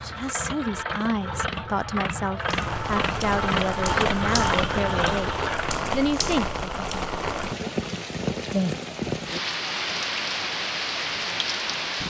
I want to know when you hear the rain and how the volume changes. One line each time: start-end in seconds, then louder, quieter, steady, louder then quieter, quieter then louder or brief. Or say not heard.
2.5-12.0 steady.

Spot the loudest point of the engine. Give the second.
4 s.